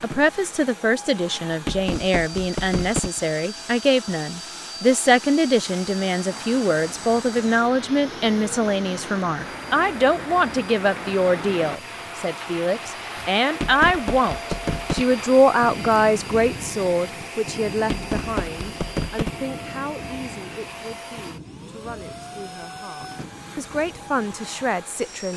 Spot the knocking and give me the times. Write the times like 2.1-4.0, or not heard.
1.6-3.2, 13.5-15.2, 17.8-19.4.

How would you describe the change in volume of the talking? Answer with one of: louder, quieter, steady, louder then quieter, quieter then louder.
quieter.